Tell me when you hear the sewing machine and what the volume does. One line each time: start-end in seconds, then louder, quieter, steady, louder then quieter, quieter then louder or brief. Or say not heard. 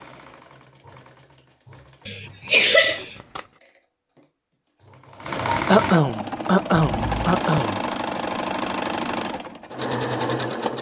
0.0-10.7 louder.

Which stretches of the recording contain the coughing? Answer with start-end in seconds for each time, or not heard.
2.0-3.1, 5.7-7.8.